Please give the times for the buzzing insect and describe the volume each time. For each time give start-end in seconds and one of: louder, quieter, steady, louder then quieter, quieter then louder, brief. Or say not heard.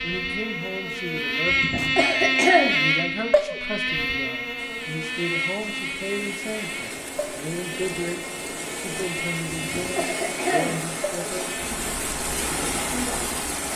0.0-13.7 quieter.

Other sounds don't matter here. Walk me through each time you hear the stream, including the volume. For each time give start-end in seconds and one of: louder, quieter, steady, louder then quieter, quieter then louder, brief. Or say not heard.
4.5-13.7 louder.